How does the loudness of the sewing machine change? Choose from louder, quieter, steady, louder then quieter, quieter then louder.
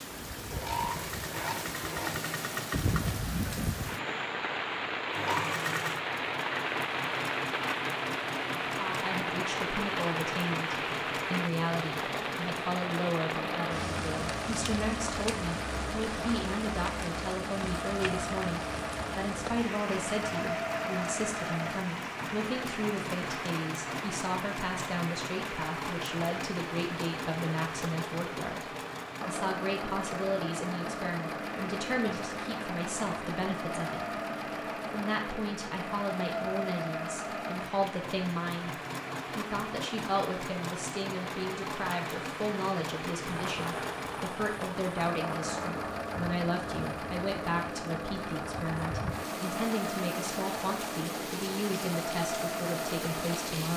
steady.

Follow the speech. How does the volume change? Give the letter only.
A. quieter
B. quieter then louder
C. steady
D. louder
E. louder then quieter
C.